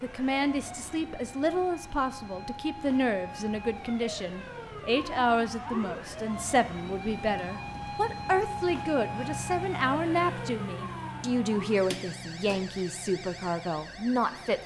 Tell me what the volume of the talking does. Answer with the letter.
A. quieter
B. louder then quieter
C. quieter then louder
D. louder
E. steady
E.